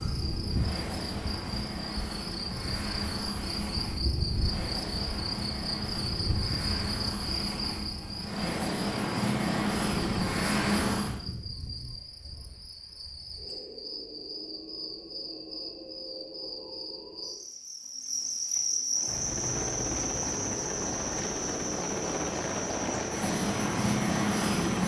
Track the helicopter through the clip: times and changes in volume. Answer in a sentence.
You can hear the helicopter from 0.0 to 11.2 s, getting louder; and from 18.9 to 24.8 s, getting louder.